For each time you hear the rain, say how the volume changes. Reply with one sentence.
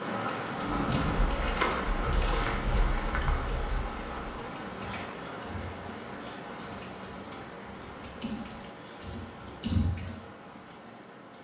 The rain can be heard from 0.0 to 11.4 s, getting quieter.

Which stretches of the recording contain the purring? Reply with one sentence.
The purring can't be heard in this clip.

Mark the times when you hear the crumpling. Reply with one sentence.
You can hear the crumpling from 1.4 to 3.4 s.